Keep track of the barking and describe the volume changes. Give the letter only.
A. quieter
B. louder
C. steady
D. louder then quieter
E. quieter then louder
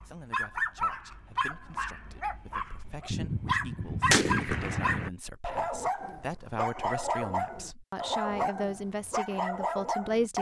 C.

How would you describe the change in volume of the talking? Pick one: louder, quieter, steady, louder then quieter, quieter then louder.
louder.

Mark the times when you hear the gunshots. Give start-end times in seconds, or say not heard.
3.1-5.1.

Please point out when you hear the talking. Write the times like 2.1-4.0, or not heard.
0.0-10.3.